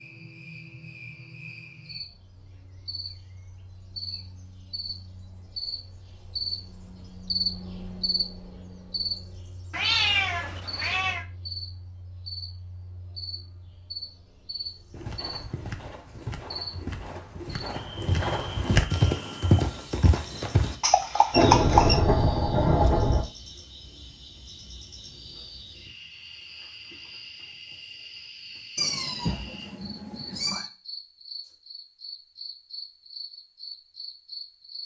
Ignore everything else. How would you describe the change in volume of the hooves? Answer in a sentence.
The volume of the hooves goes up.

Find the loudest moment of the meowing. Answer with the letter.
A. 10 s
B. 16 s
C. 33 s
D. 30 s
A.